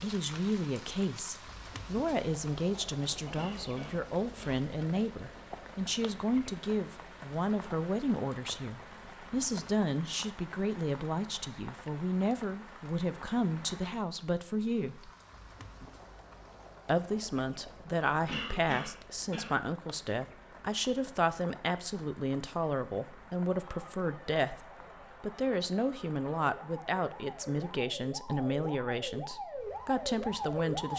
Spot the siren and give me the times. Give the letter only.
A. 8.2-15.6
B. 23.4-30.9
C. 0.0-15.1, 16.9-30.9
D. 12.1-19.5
B.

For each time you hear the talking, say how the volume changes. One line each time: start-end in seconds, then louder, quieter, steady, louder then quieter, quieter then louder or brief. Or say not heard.
0.0-15.1 steady
16.9-30.9 steady.